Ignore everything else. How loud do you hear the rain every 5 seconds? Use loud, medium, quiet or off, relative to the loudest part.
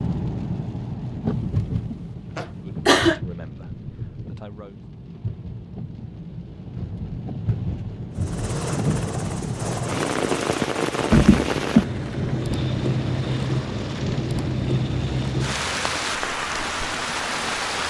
medium, medium, loud, loud.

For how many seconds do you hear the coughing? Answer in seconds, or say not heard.
3 s.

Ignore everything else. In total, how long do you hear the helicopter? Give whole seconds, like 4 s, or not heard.
8 s.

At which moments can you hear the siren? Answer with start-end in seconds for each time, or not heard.
not heard.